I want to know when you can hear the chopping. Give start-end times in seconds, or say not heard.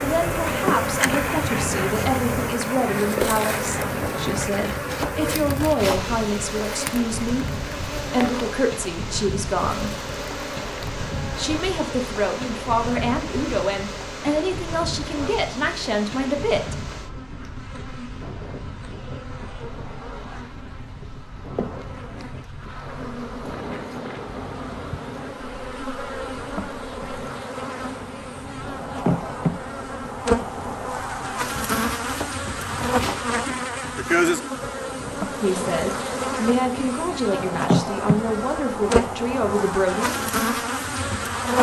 4.3-6.1, 31.6-33.4.